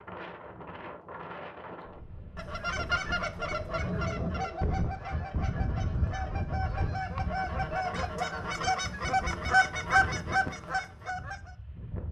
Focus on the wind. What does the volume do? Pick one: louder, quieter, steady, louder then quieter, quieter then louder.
louder then quieter.